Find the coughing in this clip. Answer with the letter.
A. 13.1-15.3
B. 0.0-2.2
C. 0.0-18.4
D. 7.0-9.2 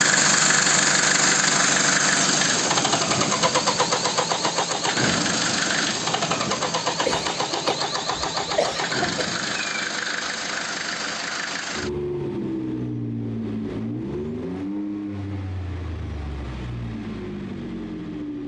D.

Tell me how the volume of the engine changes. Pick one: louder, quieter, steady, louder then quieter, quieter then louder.
quieter.